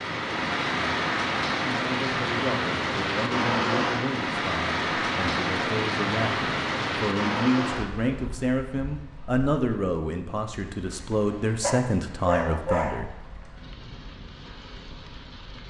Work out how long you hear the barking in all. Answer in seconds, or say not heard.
2 s.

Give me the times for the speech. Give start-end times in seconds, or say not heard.
1.6-13.2.